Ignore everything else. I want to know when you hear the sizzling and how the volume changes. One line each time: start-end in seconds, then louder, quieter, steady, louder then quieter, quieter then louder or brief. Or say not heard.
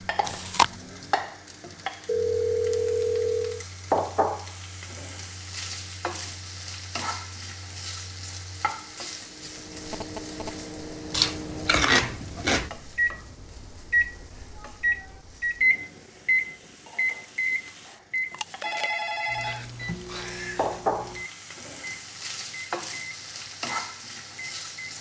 0.0-24.9 quieter then louder.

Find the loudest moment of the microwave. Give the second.
16 s.